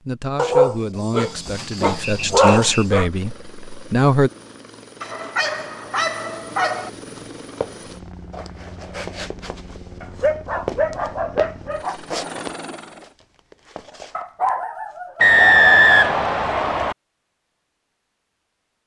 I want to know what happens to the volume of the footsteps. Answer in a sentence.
The loudness of the footsteps goes up, then down.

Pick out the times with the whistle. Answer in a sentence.
You can hear the whistle from 2.0 to 2.9 s and from 15.2 to 16.9 s.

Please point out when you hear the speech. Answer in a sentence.
You can hear the speech from 0.1 to 4.3 s.